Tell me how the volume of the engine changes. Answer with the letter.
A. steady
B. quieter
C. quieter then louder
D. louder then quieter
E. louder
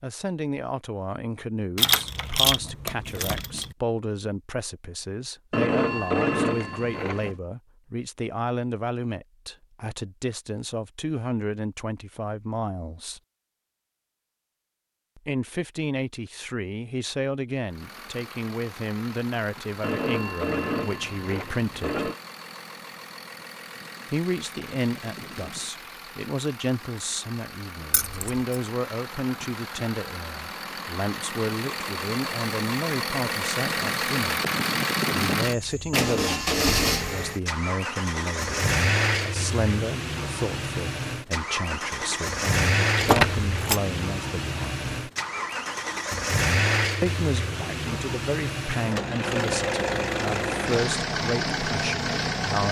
E.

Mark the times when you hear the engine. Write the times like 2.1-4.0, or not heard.
17.6-52.6.